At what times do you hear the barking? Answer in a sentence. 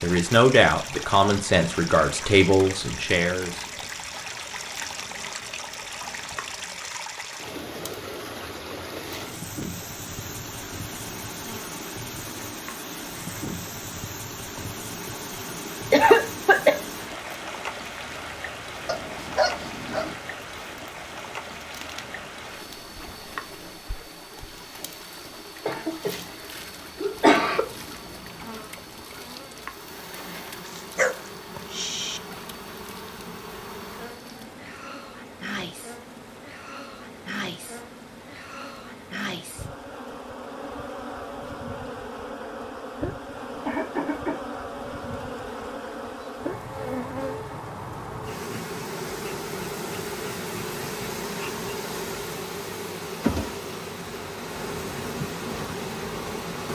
You can hear the barking from 18.9 to 20.1 s and from 30.6 to 32.2 s.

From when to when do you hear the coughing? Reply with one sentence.
The coughing can be heard from 15.9 to 16.8 s, from 25.6 to 26.1 s, from 27.0 to 27.6 s and from 43.6 to 44.4 s.